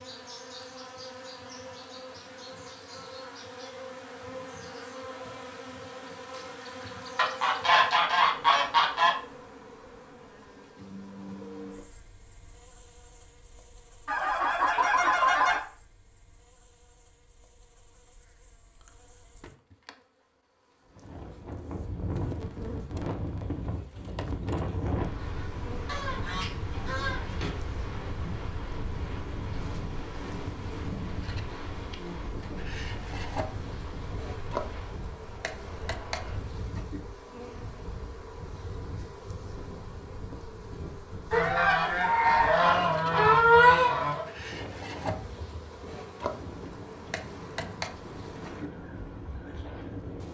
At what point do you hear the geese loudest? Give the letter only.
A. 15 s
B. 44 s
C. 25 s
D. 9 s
B.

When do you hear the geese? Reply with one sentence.
You can hear the geese from 7.2 to 9.2 s, from 14.1 to 15.6 s, from 25.9 to 27.5 s and from 41.3 to 44.2 s.